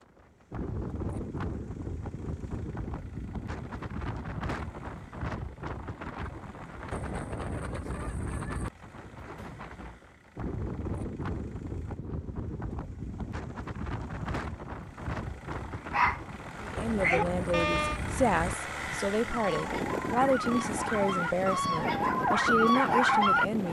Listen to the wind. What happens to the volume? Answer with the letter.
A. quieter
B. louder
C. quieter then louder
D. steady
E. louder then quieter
D.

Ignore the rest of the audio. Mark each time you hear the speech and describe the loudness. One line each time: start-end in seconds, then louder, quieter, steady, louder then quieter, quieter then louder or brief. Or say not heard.
16.6-23.6 steady.